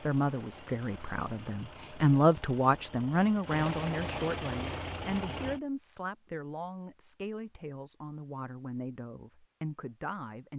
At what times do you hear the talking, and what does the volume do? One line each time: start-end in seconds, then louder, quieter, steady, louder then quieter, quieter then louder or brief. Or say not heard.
0.0-10.5 quieter.